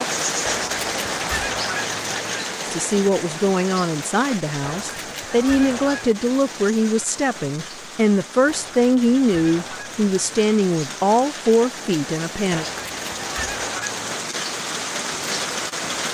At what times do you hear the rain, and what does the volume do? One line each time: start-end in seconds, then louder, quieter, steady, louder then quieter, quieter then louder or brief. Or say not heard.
0.0-16.0 quieter then louder.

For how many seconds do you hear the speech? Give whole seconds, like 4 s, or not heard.
10 s.